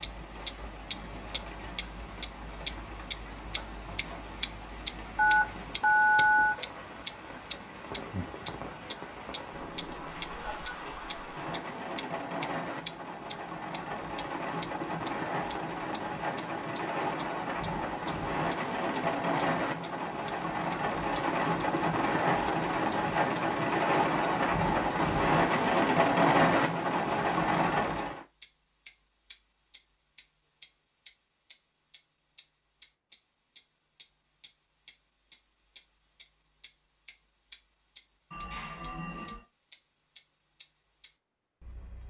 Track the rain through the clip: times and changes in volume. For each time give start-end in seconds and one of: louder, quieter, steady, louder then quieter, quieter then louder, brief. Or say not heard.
0.0-28.2 louder.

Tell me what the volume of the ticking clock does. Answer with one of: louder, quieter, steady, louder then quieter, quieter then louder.
quieter.